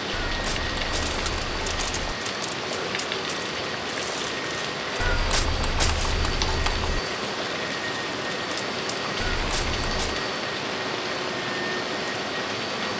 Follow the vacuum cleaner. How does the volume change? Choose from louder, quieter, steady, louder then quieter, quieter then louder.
steady.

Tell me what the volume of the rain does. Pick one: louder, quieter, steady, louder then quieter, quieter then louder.
steady.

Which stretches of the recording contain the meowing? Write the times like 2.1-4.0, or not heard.
0.1-2.1, 5.0-7.0, 9.2-10.2.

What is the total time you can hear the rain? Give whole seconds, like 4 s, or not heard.
13 s.